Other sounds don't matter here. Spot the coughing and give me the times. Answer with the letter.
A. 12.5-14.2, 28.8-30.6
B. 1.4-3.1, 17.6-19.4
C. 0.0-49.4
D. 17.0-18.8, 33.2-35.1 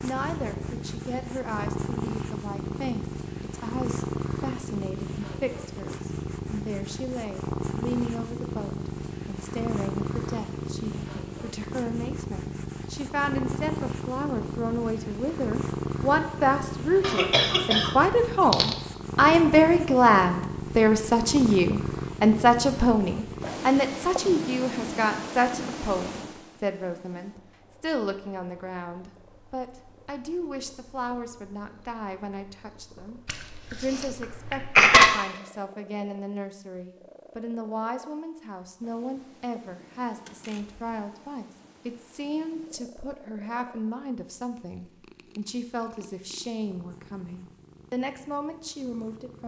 D.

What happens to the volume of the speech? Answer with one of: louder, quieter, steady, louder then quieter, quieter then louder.
louder then quieter.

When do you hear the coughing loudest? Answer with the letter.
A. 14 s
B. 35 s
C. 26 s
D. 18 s
B.